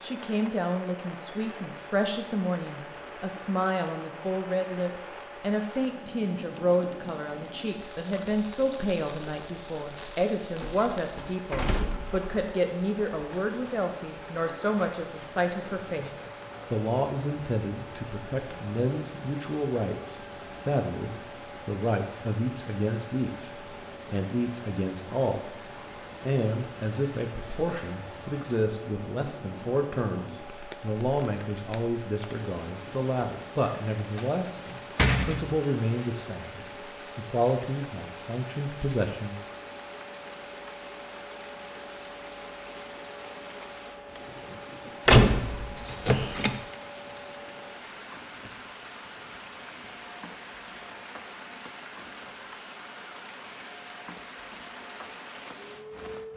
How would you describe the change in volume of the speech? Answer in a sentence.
The loudness of the speech stays about the same.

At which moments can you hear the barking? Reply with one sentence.
You can't hear the barking here.